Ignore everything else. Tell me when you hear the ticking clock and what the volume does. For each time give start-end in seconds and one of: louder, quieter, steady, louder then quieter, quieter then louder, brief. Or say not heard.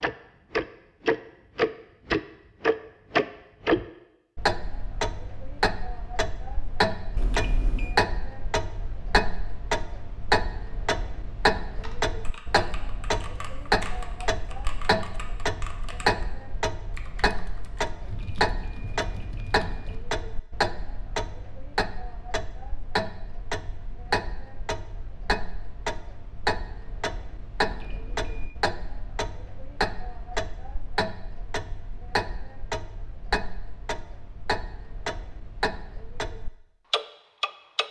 0.0-37.8 quieter.